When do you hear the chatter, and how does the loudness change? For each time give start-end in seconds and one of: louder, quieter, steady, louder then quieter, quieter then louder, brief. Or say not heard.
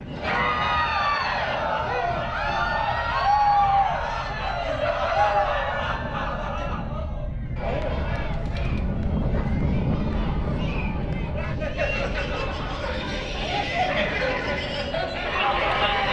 0.1-16.0 quieter then louder.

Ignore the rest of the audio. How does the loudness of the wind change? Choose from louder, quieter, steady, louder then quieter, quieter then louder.
louder then quieter.